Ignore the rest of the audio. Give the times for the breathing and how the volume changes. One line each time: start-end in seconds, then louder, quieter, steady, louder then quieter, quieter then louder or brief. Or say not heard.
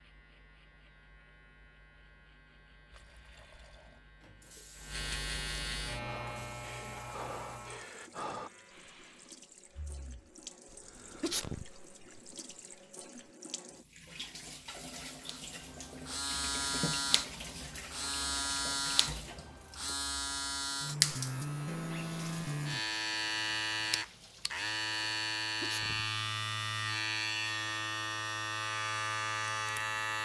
6.0-11.6 quieter.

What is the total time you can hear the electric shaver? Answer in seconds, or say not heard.
24 s.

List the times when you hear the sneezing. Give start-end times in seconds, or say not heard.
11.2-12.6, 25.6-26.1.